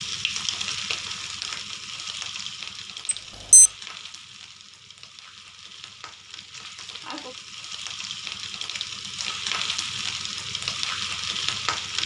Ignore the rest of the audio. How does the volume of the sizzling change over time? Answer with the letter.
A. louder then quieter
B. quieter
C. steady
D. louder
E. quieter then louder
E.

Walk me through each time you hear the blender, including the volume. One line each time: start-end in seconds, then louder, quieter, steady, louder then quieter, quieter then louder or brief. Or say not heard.
not heard.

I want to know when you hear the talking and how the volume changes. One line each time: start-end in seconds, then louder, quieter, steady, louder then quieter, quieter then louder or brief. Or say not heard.
not heard.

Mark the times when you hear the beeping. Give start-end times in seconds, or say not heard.
3.0-3.7.